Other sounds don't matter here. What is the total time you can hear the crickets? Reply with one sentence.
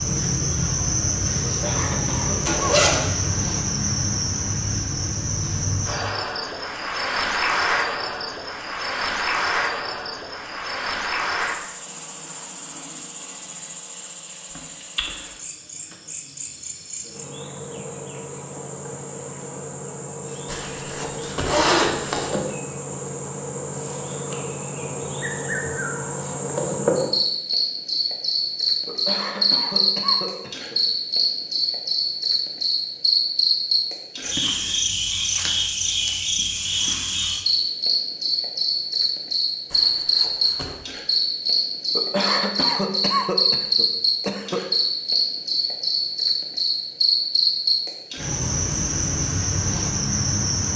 The crickets can be heard for 51 seconds in total.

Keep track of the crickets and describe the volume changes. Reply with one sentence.
The volume of the crickets goes down, then up.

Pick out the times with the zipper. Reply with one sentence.
You can hear the zipper from 2.5 to 3.0 s, from 20.4 to 22.3 s and from 39.7 to 40.8 s.